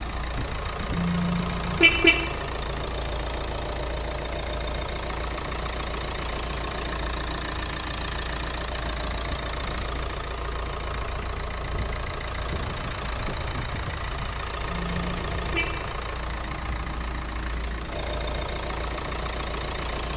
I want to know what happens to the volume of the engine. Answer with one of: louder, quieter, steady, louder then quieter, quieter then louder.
steady.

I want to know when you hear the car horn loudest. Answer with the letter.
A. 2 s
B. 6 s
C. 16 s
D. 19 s
A.